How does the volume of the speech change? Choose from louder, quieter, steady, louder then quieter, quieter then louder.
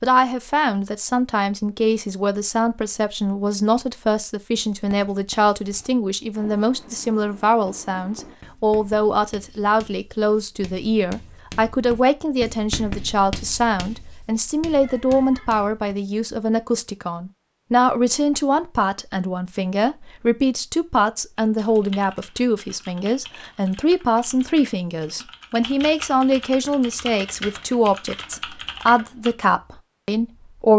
steady.